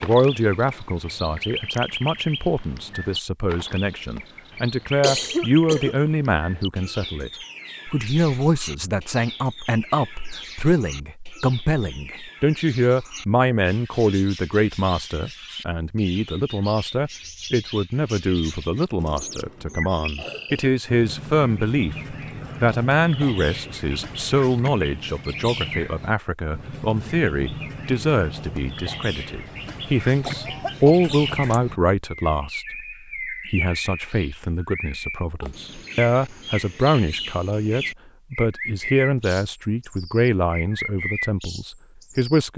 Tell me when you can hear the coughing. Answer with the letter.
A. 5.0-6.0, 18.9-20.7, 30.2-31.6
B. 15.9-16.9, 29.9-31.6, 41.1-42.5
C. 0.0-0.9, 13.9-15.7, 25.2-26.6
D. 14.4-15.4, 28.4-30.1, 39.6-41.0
A.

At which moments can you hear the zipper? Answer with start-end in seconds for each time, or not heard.
not heard.